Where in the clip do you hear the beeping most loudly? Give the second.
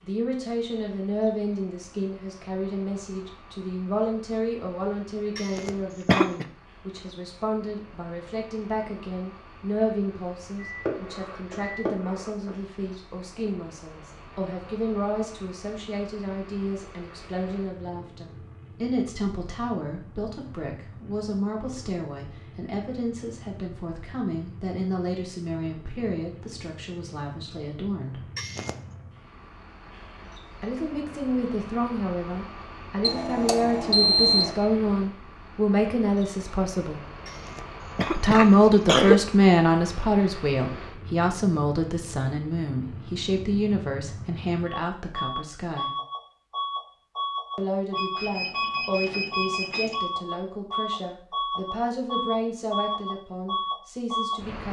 34 s.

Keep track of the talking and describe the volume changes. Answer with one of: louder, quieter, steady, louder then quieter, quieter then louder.
louder then quieter.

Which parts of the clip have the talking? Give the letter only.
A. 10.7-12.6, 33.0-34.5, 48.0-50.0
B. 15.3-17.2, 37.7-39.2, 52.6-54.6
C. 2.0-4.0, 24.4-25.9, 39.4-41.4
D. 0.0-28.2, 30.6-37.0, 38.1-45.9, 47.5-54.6
D.